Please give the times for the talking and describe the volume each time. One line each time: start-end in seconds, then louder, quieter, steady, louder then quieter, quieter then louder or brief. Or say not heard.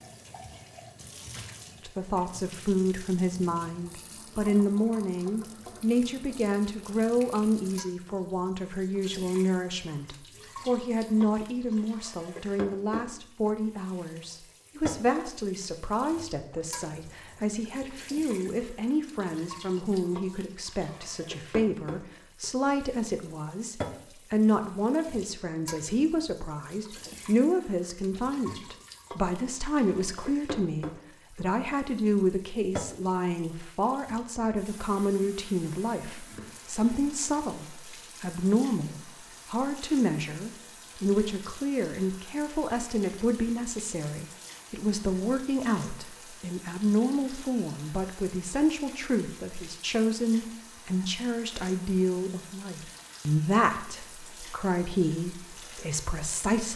1.9-56.7 steady.